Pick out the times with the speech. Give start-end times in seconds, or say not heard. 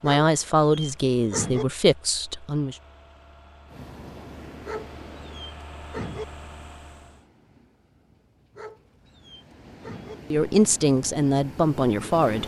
0.0-2.8, 10.3-12.4.